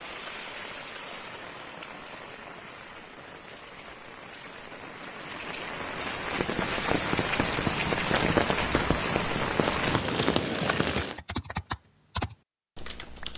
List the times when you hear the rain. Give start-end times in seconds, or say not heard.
0.0-11.2.